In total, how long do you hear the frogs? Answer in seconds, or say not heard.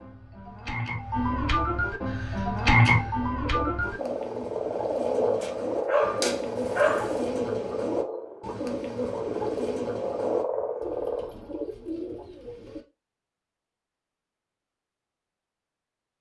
12 s.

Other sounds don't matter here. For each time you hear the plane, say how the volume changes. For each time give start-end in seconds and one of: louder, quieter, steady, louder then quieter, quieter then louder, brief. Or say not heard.
not heard.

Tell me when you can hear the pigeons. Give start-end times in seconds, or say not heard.
2.0-12.8.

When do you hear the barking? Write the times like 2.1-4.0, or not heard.
5.4-7.2.